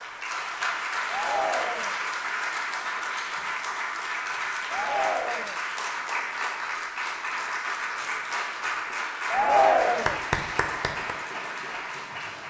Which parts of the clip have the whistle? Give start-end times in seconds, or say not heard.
not heard.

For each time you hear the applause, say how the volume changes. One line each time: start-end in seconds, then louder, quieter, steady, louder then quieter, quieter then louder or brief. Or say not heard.
0.0-12.4 steady.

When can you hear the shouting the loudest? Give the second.
10 s.